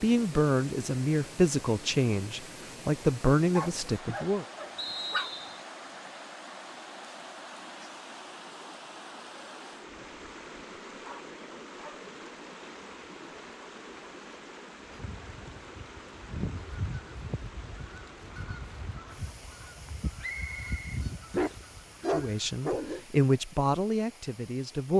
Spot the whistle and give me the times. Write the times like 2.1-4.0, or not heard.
4.8-5.7, 20.2-21.1.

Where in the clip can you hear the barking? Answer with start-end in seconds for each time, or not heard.
3.5-5.3, 10.6-12.1, 21.3-23.1.